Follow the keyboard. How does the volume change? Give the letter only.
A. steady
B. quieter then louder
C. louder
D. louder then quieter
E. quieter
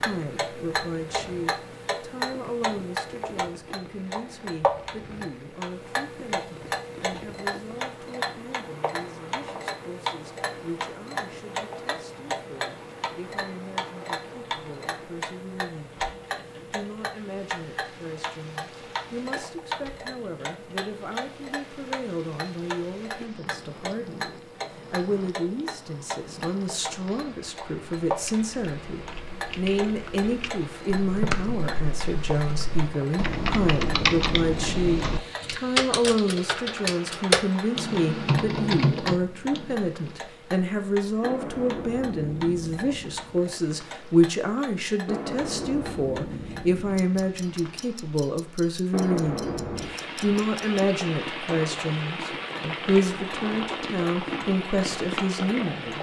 C.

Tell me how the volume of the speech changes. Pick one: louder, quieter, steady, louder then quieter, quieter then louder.
louder.